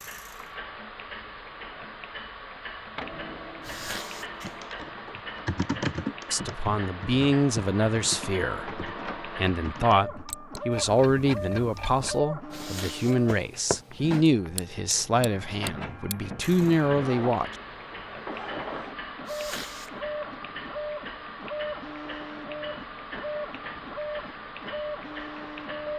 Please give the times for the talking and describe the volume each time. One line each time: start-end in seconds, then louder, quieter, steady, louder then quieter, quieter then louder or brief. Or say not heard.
6.3-17.6 steady.